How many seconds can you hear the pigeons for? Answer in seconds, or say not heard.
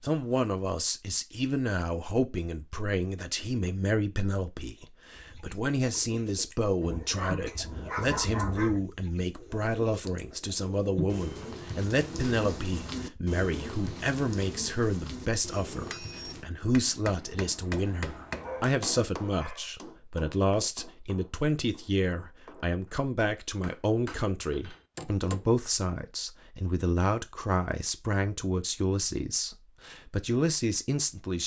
11 s.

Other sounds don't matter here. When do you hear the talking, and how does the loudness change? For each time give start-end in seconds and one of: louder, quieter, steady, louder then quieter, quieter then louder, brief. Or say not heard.
0.0-31.4 steady.